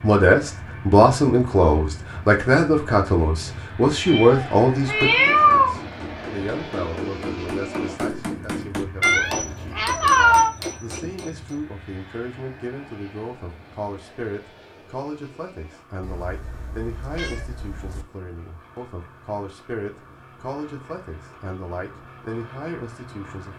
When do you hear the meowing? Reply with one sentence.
The meowing can be heard from 4.0 to 5.8 s, from 9.0 to 10.5 s and from 16.0 to 18.1 s.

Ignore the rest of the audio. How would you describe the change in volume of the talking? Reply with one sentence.
The loudness of the talking goes down.